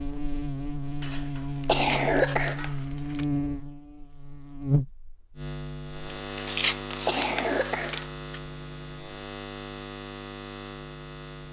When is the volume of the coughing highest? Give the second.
2 s.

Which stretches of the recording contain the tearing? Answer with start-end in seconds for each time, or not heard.
1.4-3.2, 6.3-8.1.